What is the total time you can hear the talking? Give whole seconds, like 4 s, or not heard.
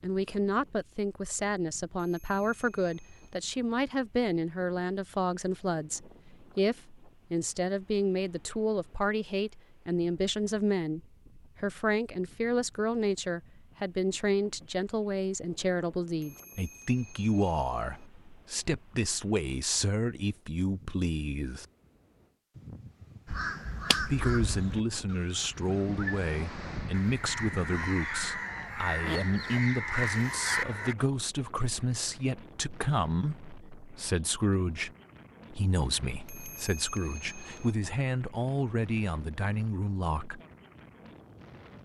37 s.